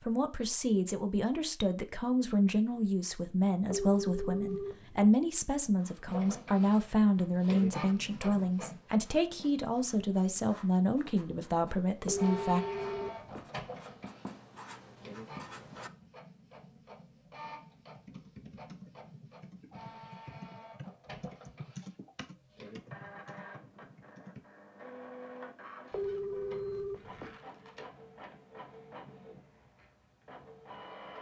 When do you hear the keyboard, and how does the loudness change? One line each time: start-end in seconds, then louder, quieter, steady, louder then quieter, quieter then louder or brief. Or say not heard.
17.9-24.4 louder then quieter.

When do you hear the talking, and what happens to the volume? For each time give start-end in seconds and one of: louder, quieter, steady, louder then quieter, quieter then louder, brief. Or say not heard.
0.0-12.6 steady.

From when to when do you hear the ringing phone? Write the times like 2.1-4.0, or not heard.
3.7-5.1, 12.1-13.4, 25.9-27.4.